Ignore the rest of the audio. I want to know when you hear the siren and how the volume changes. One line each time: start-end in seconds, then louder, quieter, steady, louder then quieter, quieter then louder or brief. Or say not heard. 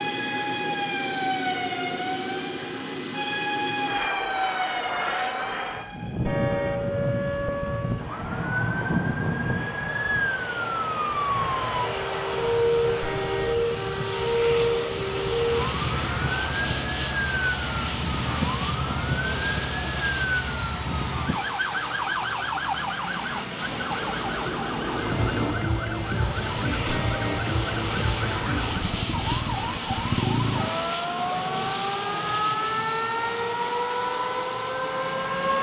0.0-35.5 steady.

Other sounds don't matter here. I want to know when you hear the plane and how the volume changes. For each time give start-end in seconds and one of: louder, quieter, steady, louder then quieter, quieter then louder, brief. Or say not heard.
0.0-35.5 steady.